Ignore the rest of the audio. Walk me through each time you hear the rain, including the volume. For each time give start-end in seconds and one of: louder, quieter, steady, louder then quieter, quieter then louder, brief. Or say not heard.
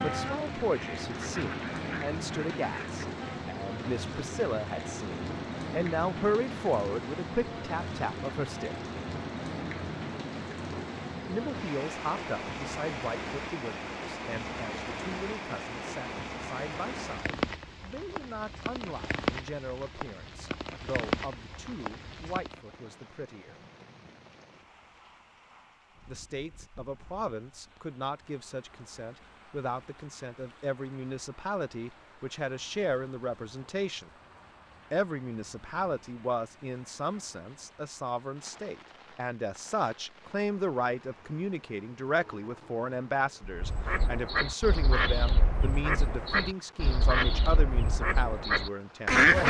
0.0-49.2 quieter.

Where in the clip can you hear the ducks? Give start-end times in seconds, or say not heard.
0.0-3.5, 43.5-49.4.